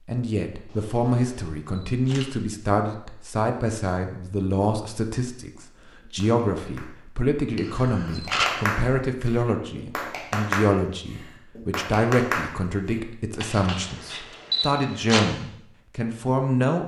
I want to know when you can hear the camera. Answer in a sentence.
The camera can be heard from 0.7 to 2.2 s, from 7.5 to 8.6 s and from 13.4 to 15.2 s.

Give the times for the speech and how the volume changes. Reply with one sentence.
The speech can be heard from 0.1 to 16.8 s, at a steady volume.